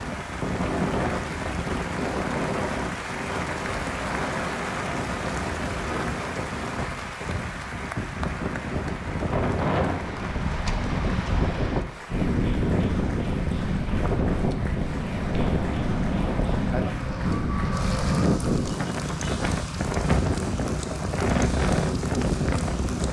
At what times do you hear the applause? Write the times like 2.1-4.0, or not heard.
0.0-23.0.